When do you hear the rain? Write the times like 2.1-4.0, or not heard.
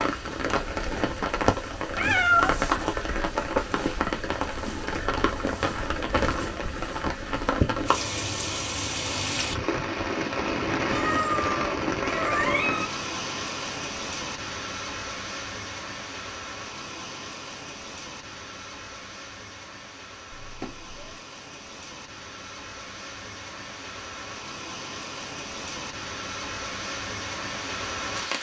0.0-28.3.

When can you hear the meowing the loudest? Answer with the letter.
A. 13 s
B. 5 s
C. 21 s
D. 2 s
D.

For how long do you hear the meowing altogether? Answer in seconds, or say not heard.
4 s.